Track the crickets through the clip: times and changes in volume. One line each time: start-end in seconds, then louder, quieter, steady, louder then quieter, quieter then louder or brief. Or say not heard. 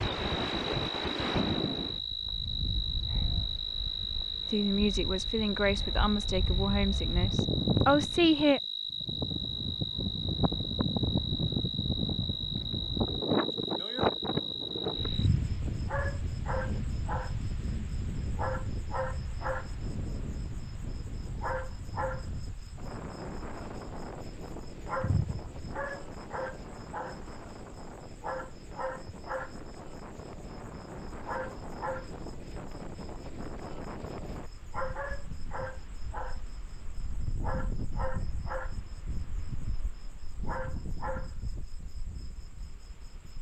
0.0-43.3 quieter.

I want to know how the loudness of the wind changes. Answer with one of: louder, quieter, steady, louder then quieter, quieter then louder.
quieter.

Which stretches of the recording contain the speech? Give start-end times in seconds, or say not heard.
4.5-8.6.